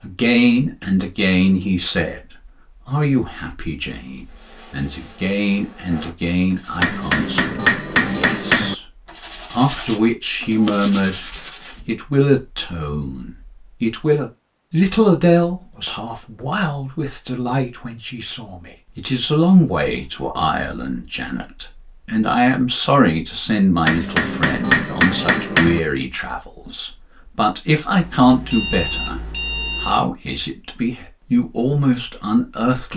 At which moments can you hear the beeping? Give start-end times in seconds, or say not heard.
28.0-30.1.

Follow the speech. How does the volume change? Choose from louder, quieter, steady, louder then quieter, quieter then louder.
steady.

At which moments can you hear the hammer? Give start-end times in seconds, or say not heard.
6.8-8.8, 23.9-25.8.